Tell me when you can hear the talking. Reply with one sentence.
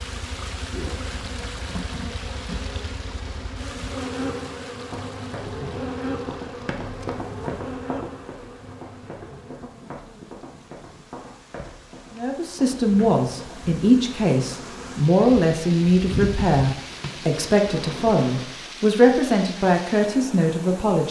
The talking can be heard from 12.2 to 21.0 s.